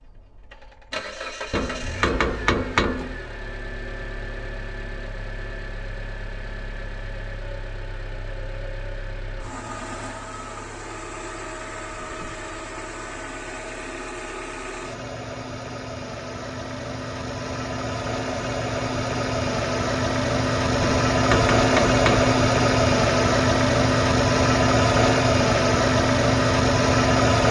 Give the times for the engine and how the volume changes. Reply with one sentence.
The engine can be heard from 0.0 to 27.4 s, getting louder.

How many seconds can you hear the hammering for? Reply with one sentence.
The hammering can be heard for 3 seconds in total.